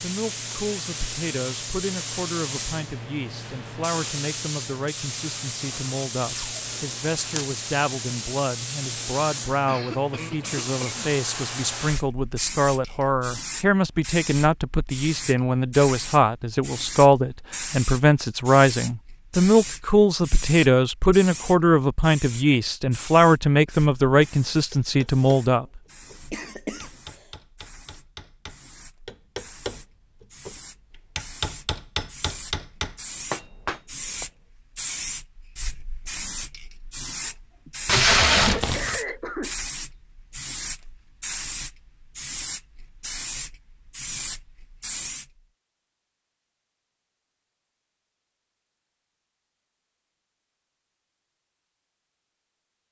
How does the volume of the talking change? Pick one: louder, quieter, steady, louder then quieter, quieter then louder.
louder.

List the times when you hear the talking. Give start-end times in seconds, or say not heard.
0.0-25.8.